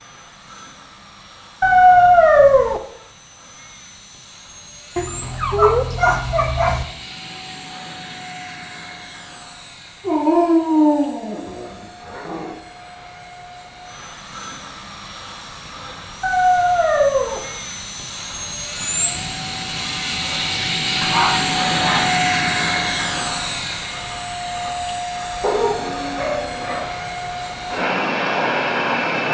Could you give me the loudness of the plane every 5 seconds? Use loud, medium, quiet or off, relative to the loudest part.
quiet, quiet, quiet, medium, loud, loud.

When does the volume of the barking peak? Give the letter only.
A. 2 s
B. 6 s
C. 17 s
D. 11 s
A.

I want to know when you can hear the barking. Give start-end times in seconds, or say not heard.
1.6-2.8, 5.0-6.8, 10.1-12.6, 16.2-17.4, 21.0-22.2, 25.4-26.9.